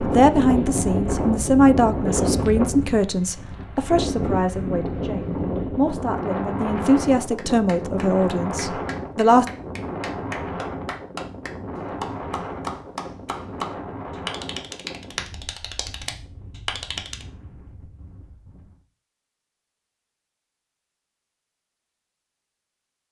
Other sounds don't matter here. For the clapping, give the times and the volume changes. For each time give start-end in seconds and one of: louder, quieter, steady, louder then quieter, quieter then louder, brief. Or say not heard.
7.3-17.2 louder.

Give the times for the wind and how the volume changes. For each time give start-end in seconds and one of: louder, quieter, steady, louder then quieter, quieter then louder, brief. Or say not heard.
0.0-18.9 quieter.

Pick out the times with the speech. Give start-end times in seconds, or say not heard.
0.0-9.4.